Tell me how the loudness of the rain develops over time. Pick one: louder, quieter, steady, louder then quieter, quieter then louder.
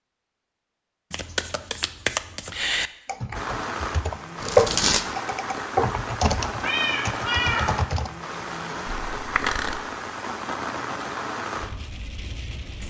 steady.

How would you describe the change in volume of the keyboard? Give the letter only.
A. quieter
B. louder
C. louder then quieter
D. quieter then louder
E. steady
C.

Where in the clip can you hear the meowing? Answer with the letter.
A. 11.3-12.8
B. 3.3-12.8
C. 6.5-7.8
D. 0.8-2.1
C.